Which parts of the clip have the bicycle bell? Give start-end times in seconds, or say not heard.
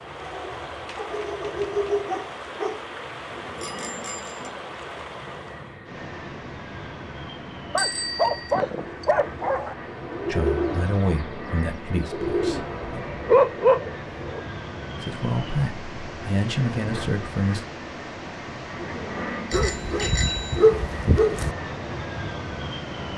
3.5-4.5, 7.8-8.6, 19.5-20.7.